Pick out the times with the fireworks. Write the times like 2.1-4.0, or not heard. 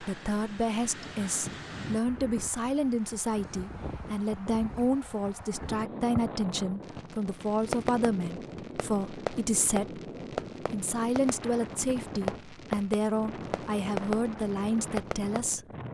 6.1-15.4.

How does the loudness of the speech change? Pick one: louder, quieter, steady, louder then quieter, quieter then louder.
steady.